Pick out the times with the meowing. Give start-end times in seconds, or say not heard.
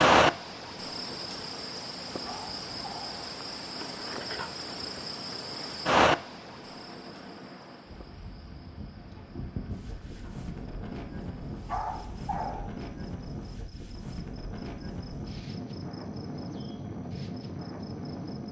not heard.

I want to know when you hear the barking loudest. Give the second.
12 s.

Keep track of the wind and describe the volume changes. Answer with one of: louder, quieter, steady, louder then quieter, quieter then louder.
louder.